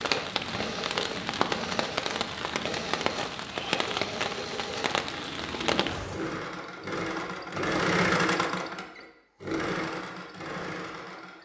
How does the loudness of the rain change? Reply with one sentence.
The loudness of the rain stays about the same.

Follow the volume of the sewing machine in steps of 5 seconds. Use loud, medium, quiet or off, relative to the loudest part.
medium, loud, medium.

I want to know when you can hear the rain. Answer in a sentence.
You can hear the rain from 0.0 to 6.3 s.